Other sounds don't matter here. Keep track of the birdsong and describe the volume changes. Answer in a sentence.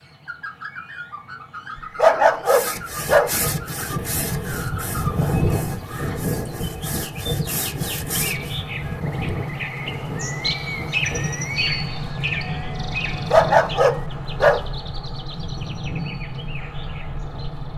The loudness of the birdsong goes up, then down.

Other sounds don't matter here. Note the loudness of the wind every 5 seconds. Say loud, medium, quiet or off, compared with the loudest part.
loud, loud, medium, medium.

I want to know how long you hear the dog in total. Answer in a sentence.
You can hear the dog for 3 seconds altogether.